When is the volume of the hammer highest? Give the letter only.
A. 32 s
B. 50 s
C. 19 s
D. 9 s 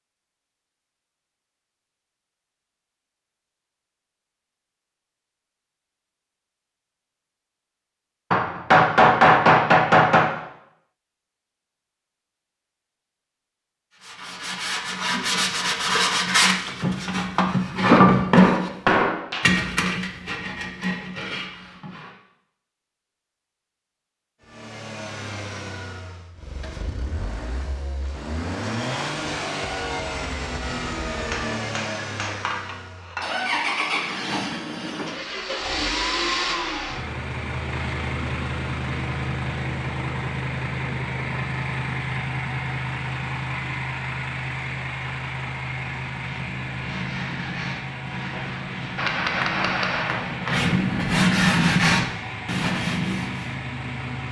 D.